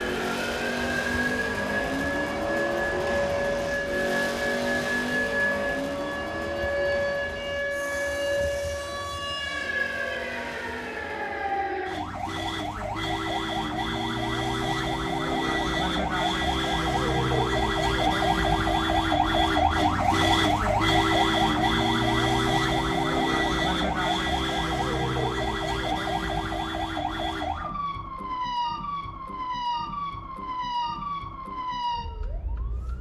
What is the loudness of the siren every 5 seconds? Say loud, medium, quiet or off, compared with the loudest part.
medium, medium, medium, loud, loud, medium, medium.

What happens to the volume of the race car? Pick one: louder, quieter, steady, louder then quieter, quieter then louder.
quieter.